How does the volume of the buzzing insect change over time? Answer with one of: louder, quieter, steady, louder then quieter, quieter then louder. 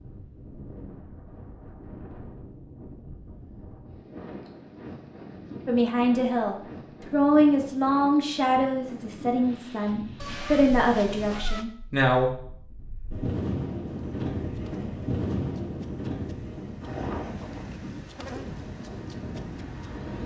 louder.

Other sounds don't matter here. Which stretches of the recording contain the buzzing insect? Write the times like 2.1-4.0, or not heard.
13.8-20.0.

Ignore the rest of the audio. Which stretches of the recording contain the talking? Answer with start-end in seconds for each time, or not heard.
5.7-12.3.